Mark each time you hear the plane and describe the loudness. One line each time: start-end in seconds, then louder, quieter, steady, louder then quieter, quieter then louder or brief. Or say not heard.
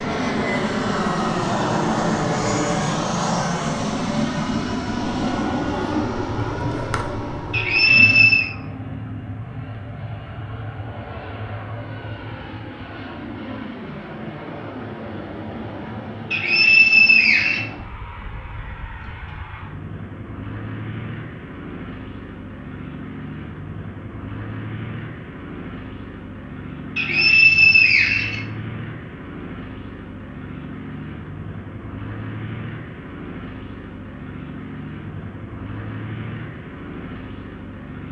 0.0-38.0 quieter.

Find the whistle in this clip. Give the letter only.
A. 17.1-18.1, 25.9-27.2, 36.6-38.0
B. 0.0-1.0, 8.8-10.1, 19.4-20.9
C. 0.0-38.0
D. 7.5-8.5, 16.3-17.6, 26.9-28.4
D.